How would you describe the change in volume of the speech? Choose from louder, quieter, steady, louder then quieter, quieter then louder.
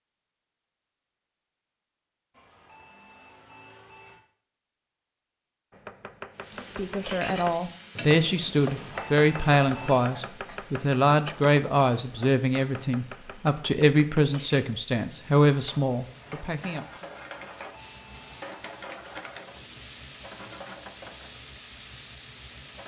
steady.